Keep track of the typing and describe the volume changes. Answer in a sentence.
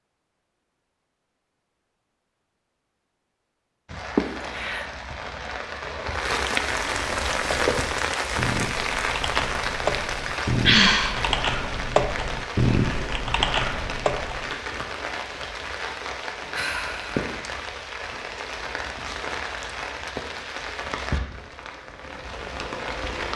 The volume of the typing goes up.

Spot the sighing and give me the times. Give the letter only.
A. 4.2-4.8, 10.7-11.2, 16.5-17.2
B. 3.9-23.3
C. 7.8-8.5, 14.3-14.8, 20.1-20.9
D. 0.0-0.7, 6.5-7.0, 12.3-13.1
A.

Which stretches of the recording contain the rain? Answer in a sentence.
You can hear the rain from 3.9 to 23.3 s.